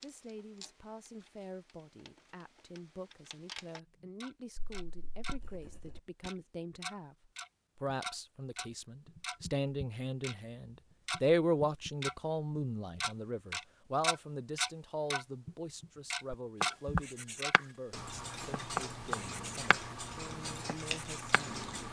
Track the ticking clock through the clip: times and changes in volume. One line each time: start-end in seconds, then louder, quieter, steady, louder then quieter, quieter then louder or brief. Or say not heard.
0.0-5.4 quieter then louder
6.2-21.8 louder then quieter.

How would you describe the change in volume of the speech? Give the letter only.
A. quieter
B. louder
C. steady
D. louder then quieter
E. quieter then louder
D.